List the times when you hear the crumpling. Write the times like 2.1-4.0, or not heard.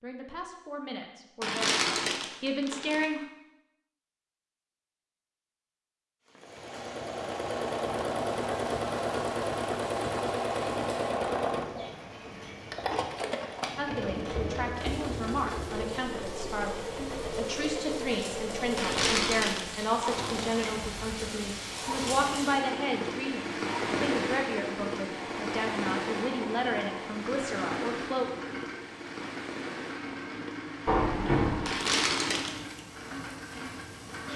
1.4-3.0, 18.8-20.8, 31.6-32.8.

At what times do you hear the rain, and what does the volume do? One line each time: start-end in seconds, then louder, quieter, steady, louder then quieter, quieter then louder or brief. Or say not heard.
6.2-34.3 louder then quieter.